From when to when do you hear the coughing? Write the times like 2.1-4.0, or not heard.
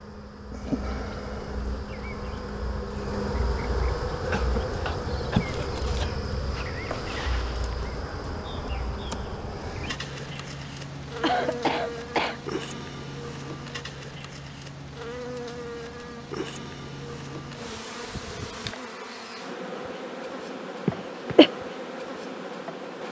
4.2-6.2, 11.2-12.4, 20.9-21.5.